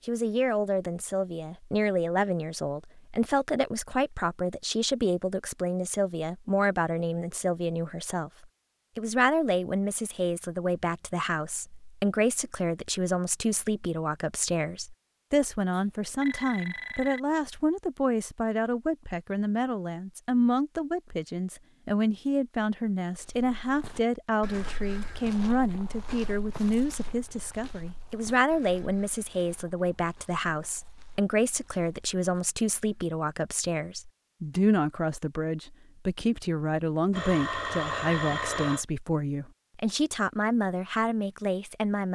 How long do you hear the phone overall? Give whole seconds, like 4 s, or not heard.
3 s.